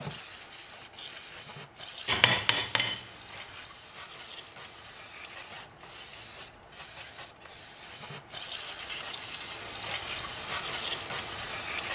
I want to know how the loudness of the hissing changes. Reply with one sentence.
The volume of the hissing goes up.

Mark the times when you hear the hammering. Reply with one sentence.
The hammering can be heard from 2.0 to 3.4 s.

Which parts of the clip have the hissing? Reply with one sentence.
The hissing can be heard from 0.0 to 11.9 s.